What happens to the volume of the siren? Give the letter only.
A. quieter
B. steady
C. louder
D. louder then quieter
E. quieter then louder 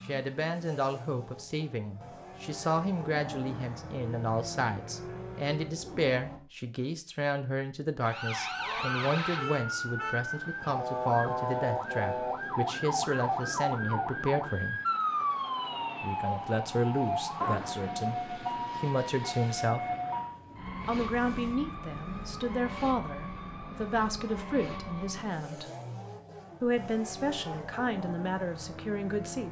A.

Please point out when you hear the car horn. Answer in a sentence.
You can hear the car horn from 9.3 to 10.2 s.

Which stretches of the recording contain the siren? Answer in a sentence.
The siren can be heard from 8.0 to 25.4 s.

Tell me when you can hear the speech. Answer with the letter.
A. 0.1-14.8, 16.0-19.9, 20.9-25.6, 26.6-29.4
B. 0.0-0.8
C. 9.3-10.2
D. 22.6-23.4
A.